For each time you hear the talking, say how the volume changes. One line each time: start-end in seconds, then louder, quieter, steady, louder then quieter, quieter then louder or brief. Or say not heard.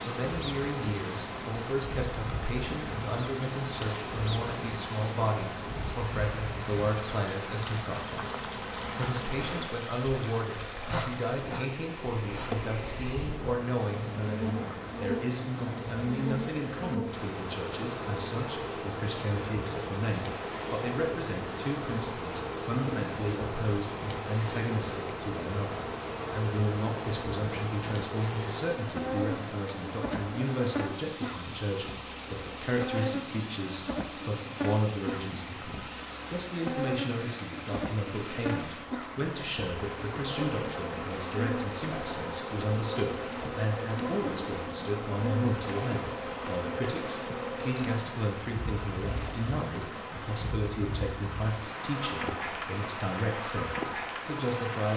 0.1-54.9 steady.